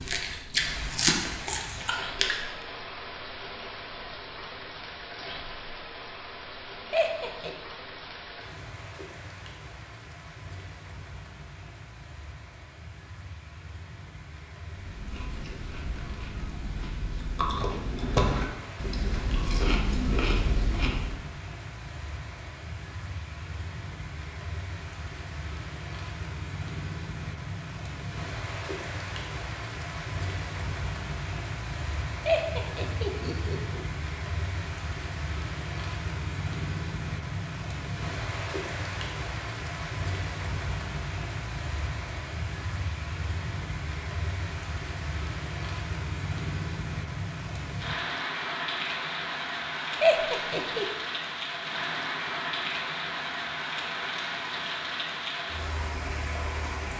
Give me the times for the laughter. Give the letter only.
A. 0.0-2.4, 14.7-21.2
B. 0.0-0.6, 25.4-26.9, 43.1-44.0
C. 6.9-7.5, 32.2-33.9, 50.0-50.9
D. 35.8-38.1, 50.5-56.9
C.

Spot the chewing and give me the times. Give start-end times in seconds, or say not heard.
0.0-2.4, 14.7-21.2.